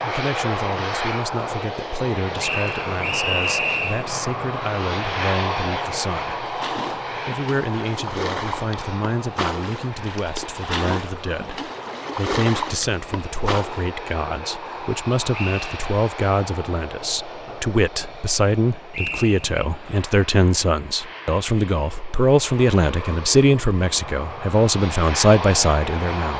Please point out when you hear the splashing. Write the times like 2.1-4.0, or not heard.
6.5-13.9.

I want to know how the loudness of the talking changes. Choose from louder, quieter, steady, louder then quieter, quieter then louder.
louder.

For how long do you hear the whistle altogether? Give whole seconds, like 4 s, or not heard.
3 s.